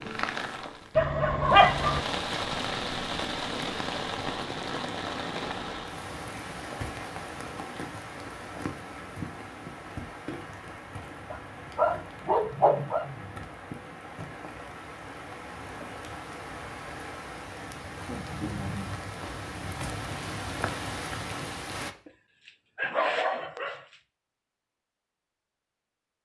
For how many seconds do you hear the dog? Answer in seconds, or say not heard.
5 s.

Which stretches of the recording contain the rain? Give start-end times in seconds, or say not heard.
0.0-21.9.